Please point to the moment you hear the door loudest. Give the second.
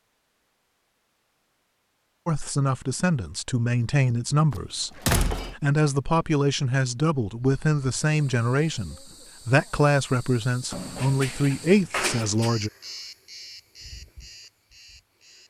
5 s.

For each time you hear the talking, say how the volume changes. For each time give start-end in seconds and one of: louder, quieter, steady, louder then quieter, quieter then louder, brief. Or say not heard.
2.2-12.7 steady.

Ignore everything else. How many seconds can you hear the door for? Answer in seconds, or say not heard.
3 s.